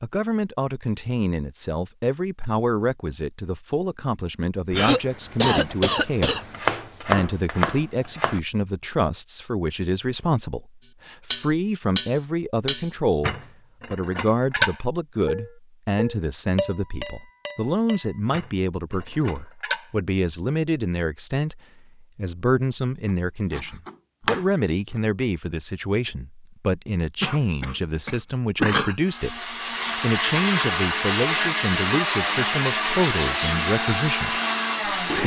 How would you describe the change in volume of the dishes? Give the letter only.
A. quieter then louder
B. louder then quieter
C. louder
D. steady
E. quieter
E.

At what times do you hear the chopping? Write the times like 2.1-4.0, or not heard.
6.5-8.4, 23.5-25.0.